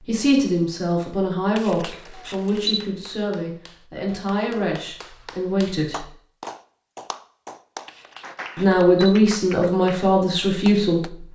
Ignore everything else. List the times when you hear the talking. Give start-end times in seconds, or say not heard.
0.1-6.1, 8.6-11.3.